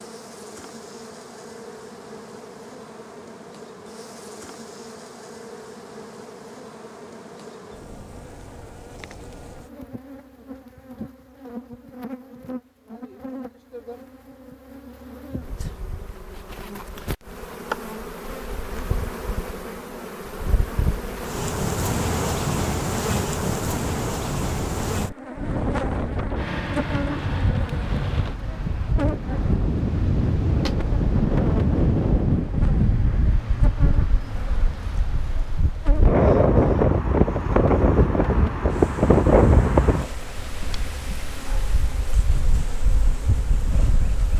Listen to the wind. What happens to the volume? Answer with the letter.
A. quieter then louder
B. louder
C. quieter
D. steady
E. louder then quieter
E.